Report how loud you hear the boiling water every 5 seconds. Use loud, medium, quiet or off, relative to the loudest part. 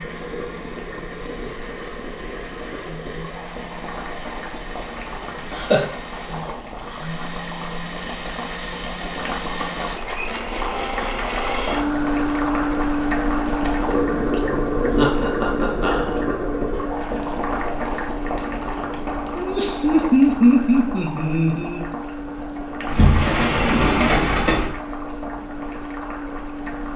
medium, medium, loud, loud, medium, medium.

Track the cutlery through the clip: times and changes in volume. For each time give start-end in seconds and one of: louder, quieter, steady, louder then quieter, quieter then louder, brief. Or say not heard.
not heard.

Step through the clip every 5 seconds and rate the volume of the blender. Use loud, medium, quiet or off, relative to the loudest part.
quiet, medium, loud, medium, medium, medium.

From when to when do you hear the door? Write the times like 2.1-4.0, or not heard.
22.9-24.8.